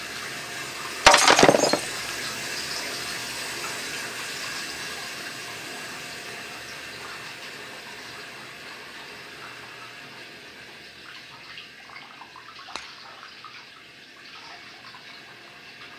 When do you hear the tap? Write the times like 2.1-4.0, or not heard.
0.0-15.9.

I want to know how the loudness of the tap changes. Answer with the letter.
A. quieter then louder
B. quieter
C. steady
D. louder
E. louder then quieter
B.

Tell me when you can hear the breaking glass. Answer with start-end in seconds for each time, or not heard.
1.1-1.9.